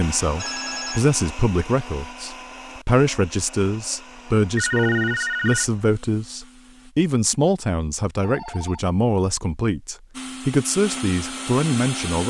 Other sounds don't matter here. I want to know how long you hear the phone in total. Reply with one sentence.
The phone can be heard for 2 seconds in total.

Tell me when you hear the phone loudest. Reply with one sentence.
The loudest moment of the phone is at 5 seconds.